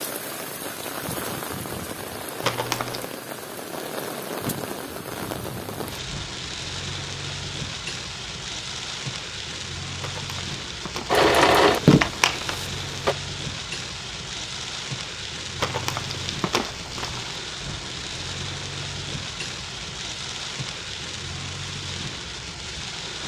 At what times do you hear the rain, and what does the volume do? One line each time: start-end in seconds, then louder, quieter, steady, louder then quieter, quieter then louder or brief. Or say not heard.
0.0-23.2 steady.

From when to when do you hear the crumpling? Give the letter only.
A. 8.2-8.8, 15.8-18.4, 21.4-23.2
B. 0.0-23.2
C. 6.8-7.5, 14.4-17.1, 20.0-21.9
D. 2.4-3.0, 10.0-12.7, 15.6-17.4
D.